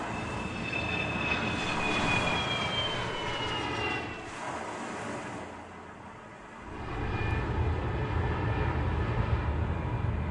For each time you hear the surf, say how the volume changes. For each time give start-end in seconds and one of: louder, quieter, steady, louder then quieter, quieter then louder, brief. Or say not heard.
0.0-10.2 quieter.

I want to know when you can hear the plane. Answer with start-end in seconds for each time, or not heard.
0.0-4.5, 6.6-10.2.